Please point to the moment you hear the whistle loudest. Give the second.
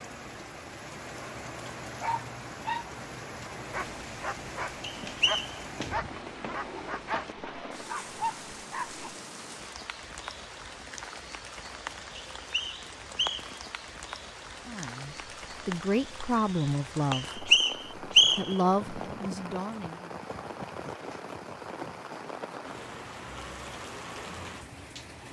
18 s.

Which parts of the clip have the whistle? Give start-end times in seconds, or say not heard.
5.0-5.5, 12.3-13.6, 17.1-18.6.